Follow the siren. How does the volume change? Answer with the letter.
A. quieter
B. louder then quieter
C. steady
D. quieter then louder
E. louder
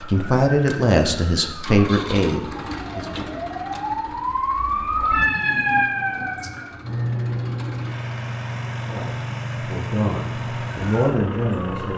B.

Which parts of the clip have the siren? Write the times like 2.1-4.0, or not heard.
0.0-11.9.